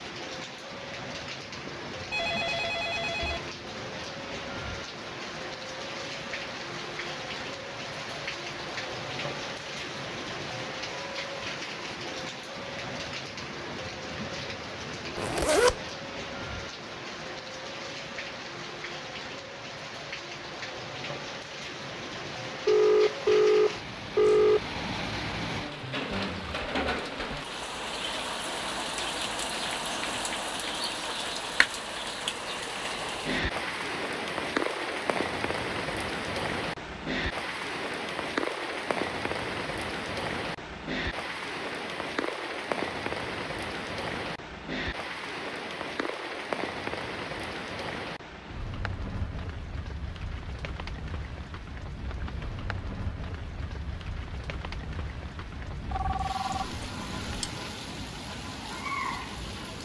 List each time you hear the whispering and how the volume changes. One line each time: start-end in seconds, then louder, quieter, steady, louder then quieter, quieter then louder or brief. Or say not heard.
not heard.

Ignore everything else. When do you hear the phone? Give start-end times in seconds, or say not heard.
1.6-3.4, 22.6-24.6, 55.9-57.5.